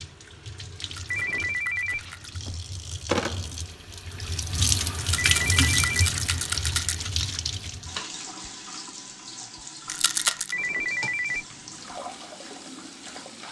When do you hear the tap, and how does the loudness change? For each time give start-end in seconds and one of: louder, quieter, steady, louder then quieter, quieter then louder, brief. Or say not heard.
0.0-13.4 louder then quieter.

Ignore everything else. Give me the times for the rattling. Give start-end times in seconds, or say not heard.
0.8-2.4, 5.0-7.0, 9.8-10.6.